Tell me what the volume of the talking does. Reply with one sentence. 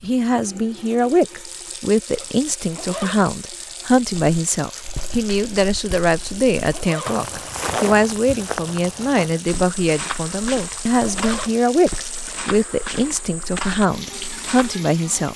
The loudness of the talking stays about the same.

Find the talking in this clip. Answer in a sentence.
You can hear the talking from 0.0 to 15.3 s.